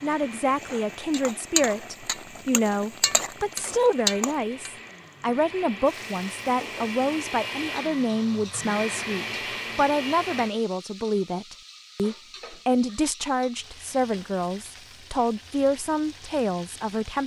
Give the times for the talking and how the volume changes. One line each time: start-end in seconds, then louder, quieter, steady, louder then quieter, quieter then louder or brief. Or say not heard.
0.0-17.2 steady.